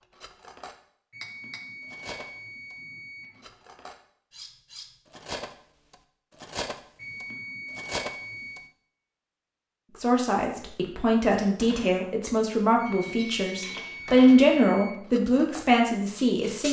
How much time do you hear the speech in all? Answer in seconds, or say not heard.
7 s.